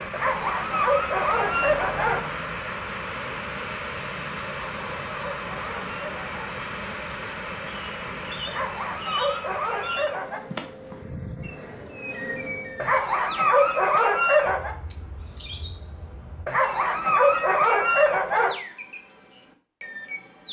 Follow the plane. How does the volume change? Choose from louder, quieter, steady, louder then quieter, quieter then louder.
quieter.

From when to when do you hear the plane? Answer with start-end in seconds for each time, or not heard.
0.0-13.1.